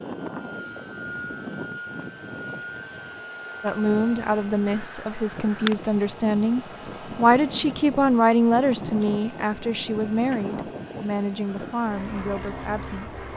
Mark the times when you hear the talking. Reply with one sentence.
The talking can be heard from 3.6 to 13.2 s.